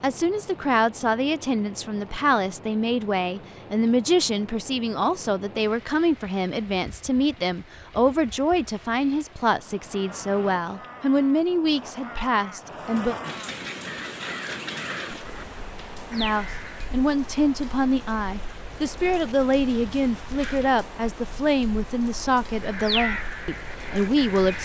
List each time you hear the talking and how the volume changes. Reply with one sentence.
The talking can be heard from 0.0 to 13.2 s, at a steady volume; and from 16.1 to 24.6 s, at a steady volume.